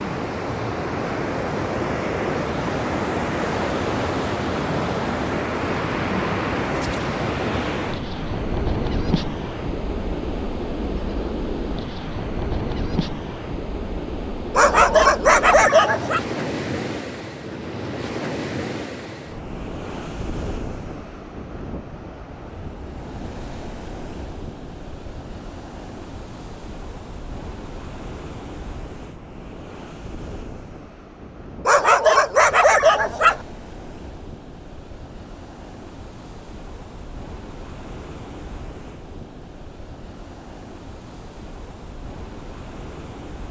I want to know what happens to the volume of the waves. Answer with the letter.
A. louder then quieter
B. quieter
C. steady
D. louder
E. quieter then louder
B.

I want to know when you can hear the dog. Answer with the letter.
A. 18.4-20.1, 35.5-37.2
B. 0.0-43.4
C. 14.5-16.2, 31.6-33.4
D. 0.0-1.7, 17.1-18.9
C.